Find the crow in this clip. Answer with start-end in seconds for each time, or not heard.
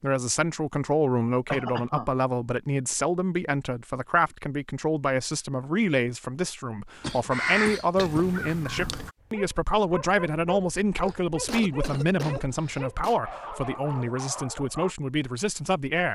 7.3-9.1.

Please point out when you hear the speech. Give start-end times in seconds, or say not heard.
0.0-16.1.